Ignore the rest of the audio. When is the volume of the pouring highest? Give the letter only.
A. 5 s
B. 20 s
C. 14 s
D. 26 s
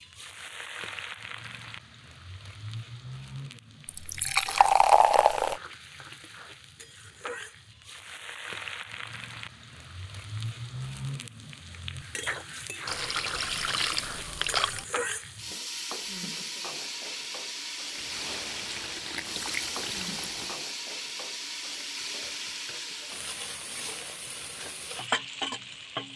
A.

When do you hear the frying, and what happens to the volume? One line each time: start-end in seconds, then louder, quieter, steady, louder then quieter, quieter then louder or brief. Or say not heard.
0.0-26.1 louder.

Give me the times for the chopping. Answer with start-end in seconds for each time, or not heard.
not heard.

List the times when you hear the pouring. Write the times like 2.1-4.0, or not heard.
3.9-5.6, 12.8-14.8, 17.9-20.6.